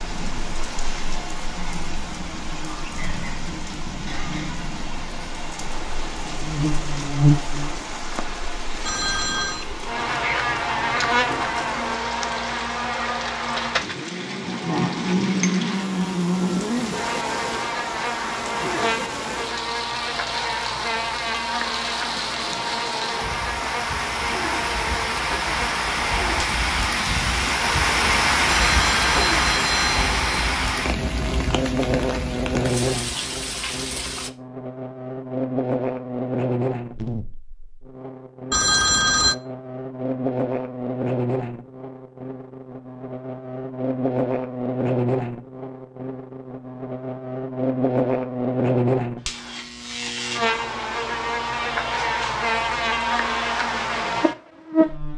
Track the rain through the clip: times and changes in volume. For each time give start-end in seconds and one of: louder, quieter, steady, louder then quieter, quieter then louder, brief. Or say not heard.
0.0-34.3 louder.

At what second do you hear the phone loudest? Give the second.
39 s.